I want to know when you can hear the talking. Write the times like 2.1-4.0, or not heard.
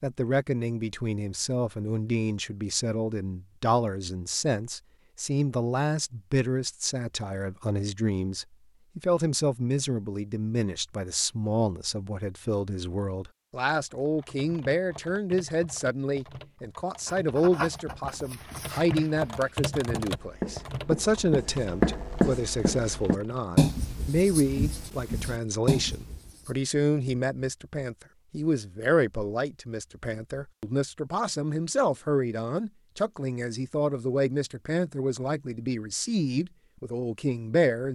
0.0-37.8.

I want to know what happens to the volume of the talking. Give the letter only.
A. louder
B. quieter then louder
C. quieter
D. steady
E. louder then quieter
D.